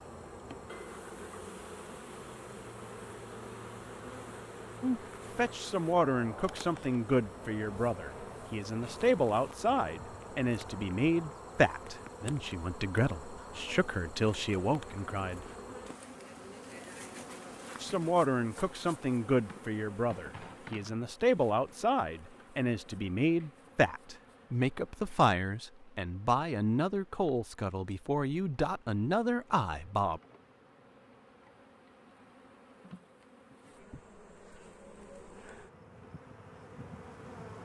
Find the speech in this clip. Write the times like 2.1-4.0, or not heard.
4.8-15.4, 17.8-30.2.